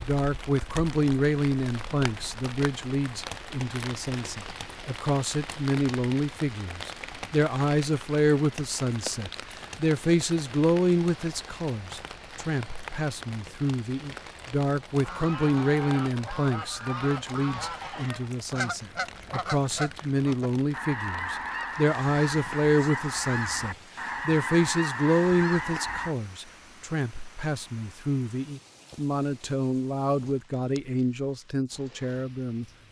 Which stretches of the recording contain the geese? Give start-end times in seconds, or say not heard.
15.0-26.1.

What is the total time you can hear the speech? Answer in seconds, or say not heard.
33 s.